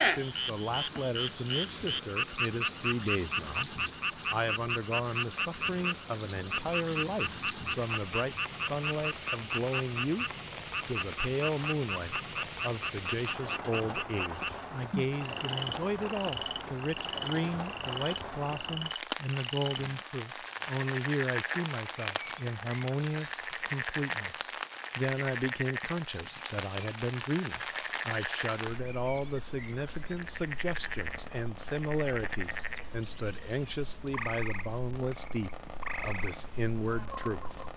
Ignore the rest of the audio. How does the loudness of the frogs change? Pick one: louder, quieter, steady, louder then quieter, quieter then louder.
quieter.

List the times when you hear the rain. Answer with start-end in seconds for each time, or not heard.
0.0-37.7.